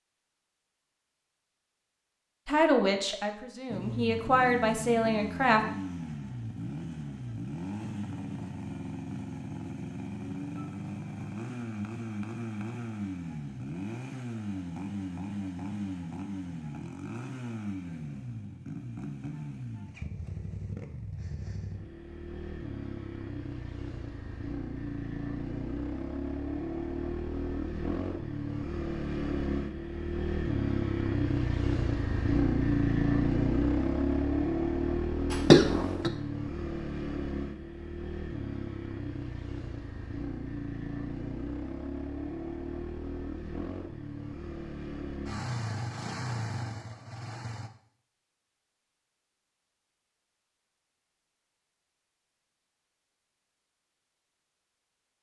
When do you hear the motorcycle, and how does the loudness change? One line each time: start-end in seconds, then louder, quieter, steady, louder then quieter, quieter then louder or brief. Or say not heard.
3.6-47.7 louder then quieter.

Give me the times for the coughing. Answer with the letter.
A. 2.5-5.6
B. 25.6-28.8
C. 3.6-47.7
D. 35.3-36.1
D.